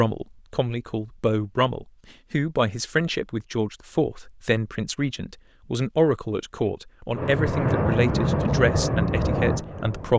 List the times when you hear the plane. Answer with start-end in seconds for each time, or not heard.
7.1-10.1.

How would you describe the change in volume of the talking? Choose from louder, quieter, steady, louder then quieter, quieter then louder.
steady.